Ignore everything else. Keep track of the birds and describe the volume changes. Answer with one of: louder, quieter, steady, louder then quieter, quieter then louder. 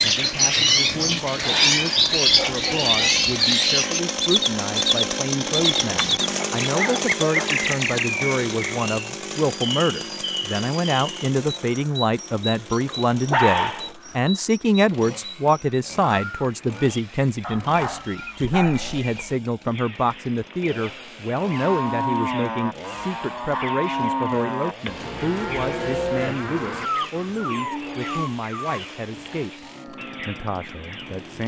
quieter.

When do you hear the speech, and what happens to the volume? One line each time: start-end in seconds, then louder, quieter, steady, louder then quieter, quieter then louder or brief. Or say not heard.
0.0-31.4 louder then quieter.